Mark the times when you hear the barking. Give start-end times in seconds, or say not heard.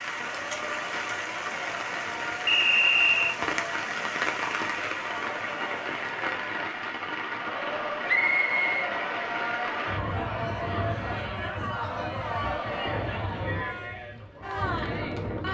not heard.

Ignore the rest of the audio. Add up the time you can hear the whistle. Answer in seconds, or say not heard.
2 s.